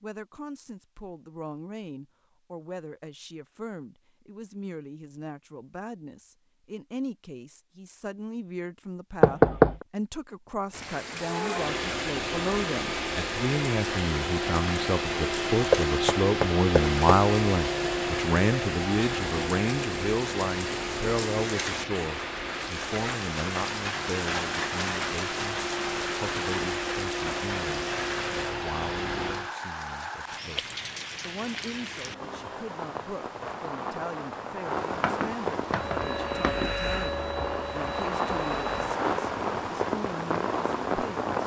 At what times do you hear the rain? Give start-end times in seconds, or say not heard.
10.7-41.4.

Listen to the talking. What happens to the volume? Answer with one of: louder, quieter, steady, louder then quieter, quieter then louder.
louder then quieter.